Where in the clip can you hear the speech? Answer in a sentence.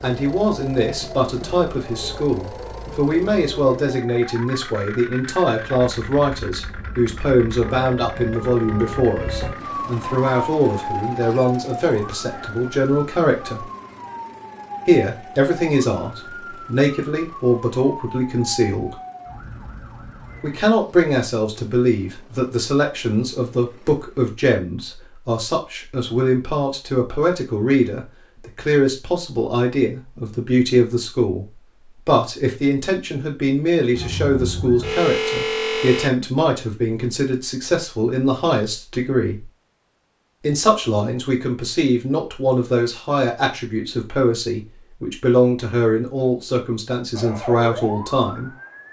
The speech can be heard from 0.0 to 13.7 s, from 14.8 to 18.9 s, from 20.4 to 31.4 s, from 32.0 to 39.5 s and from 40.4 to 48.5 s.